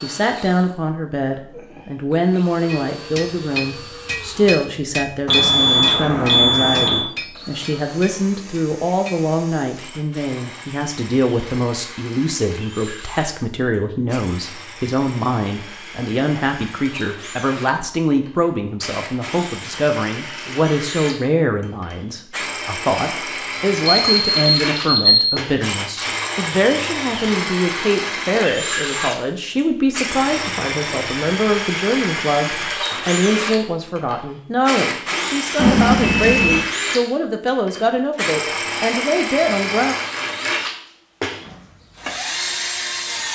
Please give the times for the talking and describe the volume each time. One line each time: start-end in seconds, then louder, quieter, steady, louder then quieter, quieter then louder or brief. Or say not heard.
0.0-40.0 steady.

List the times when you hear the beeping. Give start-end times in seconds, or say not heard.
5.2-7.0, 23.9-25.2, 35.5-36.6.